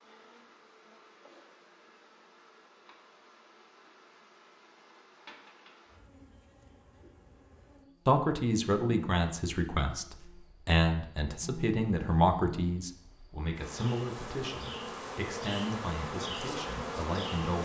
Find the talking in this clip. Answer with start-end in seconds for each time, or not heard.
8.1-17.6.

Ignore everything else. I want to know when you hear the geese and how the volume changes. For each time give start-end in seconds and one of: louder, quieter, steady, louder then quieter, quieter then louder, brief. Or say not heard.
not heard.